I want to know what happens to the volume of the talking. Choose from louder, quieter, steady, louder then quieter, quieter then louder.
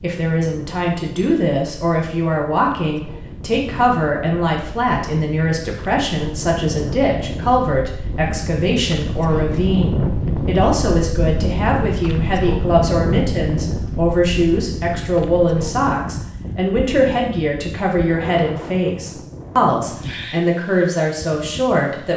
steady.